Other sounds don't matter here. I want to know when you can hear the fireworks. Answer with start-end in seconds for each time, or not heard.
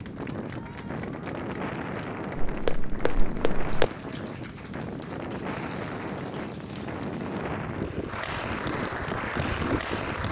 not heard.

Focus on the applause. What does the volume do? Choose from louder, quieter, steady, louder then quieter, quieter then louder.
louder.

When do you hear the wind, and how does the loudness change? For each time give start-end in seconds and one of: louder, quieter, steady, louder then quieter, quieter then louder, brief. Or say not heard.
0.0-10.2 steady.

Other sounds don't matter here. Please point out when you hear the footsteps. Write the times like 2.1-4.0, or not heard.
2.5-3.9.